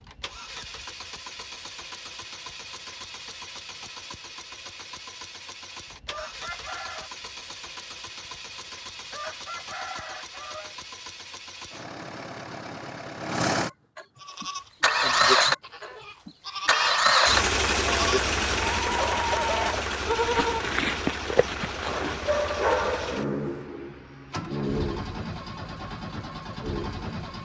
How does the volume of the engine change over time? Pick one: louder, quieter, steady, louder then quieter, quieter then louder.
louder then quieter.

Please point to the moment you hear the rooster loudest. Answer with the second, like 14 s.
19 s.